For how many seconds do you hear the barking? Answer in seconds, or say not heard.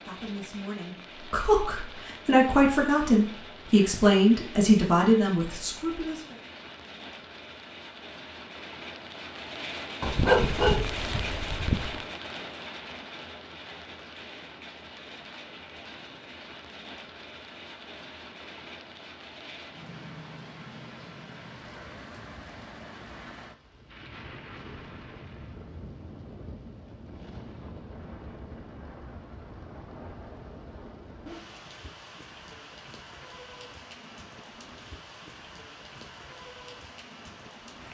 2 s.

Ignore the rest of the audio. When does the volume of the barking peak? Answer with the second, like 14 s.
10 s.